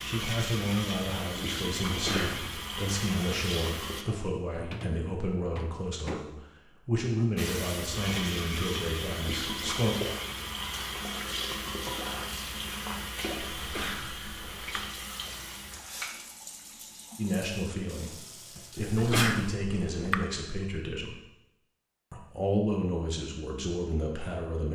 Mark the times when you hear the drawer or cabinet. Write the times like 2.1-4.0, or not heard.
4.5-6.2.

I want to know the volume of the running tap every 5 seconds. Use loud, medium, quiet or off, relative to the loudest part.
loud, loud, loud, medium, off.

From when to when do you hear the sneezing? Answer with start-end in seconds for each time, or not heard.
1.9-2.6, 13.6-14.8, 18.8-20.2.